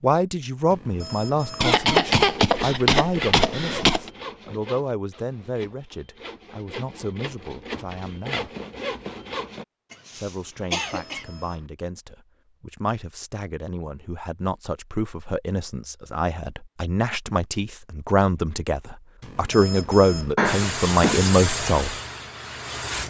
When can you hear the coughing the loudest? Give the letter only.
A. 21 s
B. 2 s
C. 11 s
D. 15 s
B.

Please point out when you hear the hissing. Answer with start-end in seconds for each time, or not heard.
20.4-23.0.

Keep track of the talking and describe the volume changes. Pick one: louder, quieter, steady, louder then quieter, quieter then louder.
quieter then louder.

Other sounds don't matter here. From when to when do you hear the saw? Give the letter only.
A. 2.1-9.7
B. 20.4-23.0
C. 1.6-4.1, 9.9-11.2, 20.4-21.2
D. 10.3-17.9
A.